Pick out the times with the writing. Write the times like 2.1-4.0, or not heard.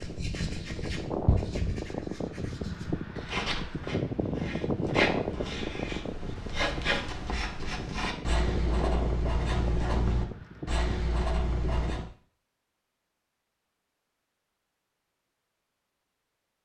0.0-12.1.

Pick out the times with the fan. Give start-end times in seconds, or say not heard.
0.0-12.1.